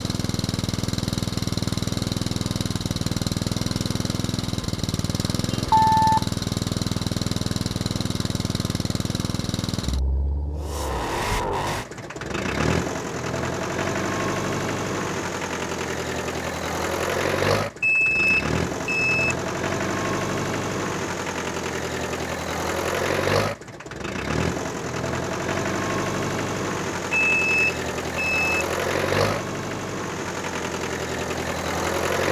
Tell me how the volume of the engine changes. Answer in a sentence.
The volume of the engine stays about the same.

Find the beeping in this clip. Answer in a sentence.
The beeping can be heard from 5.5 to 6.2 s, from 17.8 to 19.4 s and from 27.4 to 28.6 s.